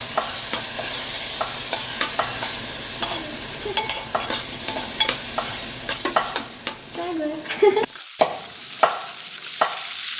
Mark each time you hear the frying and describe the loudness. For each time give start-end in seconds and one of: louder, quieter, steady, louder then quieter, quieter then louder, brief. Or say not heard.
0.0-10.1 quieter.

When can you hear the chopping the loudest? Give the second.
8 s.